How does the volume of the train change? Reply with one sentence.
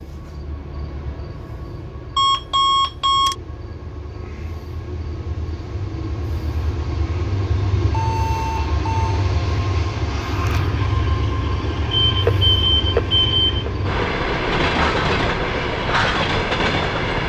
The volume of the train goes up.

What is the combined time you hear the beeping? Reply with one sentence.
The beeping can be heard for 4 seconds in total.